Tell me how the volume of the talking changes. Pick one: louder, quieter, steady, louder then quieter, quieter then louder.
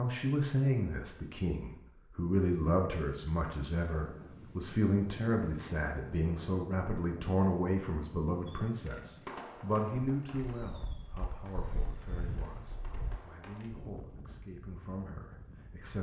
quieter.